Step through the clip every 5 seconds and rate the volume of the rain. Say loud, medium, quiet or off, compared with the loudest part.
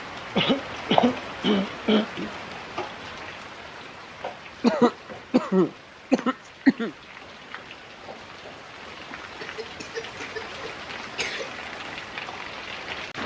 loud, medium, loud.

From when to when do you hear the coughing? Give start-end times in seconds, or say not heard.
0.3-2.3, 4.6-6.9, 9.4-11.5.